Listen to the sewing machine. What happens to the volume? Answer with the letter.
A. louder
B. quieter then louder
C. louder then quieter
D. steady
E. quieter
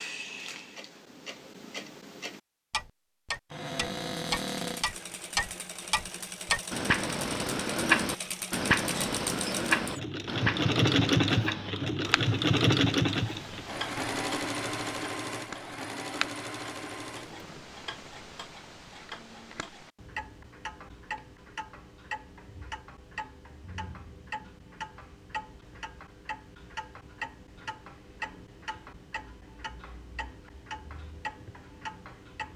C.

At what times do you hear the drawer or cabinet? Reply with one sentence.
The drawer or cabinet can be heard from 3.5 to 4.8 s.